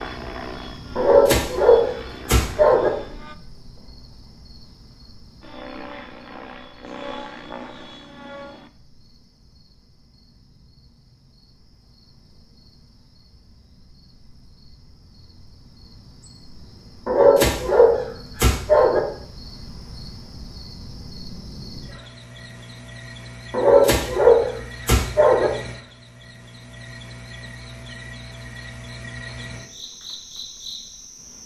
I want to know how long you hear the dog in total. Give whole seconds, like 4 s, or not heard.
6 s.